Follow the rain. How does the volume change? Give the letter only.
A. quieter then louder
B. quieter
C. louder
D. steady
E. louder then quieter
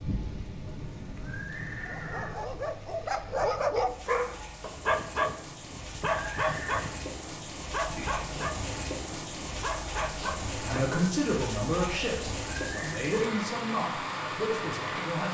C.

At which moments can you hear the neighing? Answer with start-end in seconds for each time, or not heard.
1.1-2.4, 6.0-7.0, 12.6-13.1.